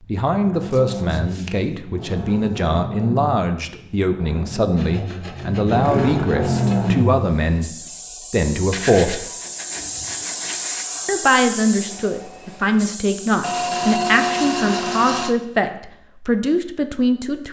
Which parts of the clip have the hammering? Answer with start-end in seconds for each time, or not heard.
not heard.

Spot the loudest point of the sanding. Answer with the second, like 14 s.
14 s.